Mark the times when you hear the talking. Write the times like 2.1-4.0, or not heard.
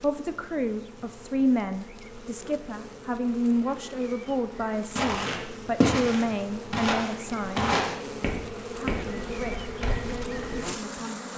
0.0-7.8, 8.8-11.3.